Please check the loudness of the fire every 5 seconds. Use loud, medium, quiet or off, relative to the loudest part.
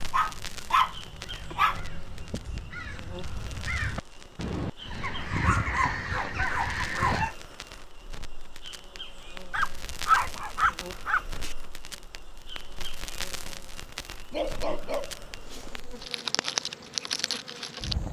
quiet, quiet, medium, loud.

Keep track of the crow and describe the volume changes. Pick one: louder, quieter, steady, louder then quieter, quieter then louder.
louder.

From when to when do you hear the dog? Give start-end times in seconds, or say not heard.
0.1-2.6, 5.3-7.3, 9.5-11.6, 14.3-15.8.